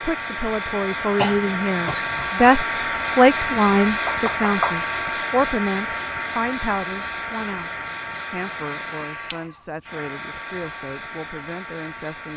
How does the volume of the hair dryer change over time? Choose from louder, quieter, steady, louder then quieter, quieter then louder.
quieter.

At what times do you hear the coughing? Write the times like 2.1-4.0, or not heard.
1.1-2.3.